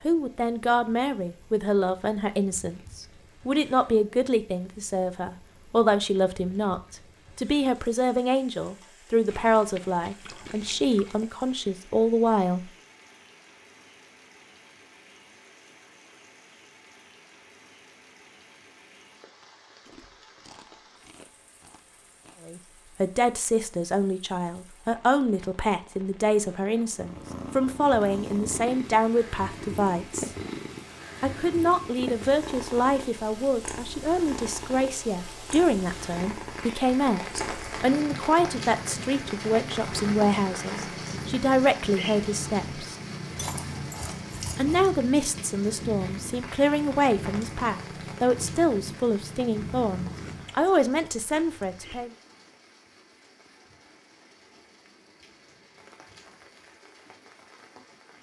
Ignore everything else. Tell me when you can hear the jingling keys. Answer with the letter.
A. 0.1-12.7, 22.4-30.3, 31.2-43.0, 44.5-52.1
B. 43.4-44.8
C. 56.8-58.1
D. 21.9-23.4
B.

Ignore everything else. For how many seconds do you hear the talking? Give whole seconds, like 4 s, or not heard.
40 s.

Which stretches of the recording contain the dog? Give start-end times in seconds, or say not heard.
not heard.